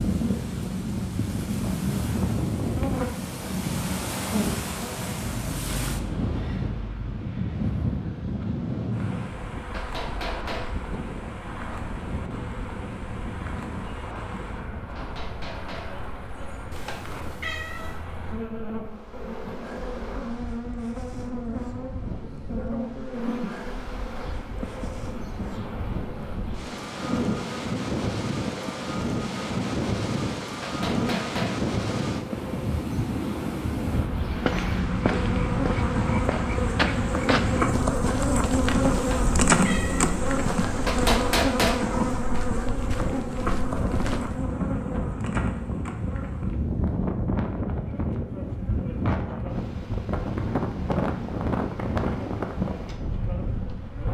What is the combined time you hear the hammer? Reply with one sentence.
You can hear the hammer for 4 seconds altogether.